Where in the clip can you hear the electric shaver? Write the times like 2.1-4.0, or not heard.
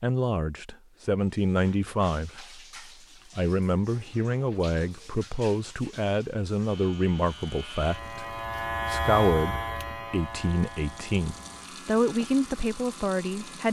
6.6-13.6.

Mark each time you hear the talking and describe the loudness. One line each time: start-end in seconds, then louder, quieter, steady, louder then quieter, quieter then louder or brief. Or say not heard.
0.0-13.6 steady.